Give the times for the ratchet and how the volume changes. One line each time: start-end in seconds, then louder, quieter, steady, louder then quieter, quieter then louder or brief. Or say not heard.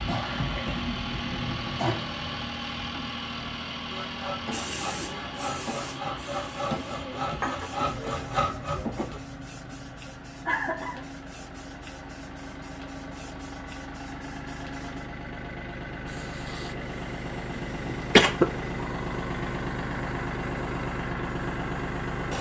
not heard.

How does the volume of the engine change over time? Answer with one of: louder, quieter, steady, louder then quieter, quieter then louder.
quieter then louder.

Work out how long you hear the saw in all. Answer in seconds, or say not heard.
5 s.